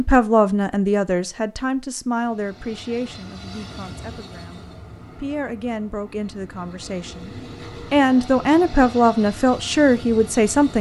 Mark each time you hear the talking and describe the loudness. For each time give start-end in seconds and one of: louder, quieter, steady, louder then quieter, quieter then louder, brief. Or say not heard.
0.0-10.7 quieter then louder.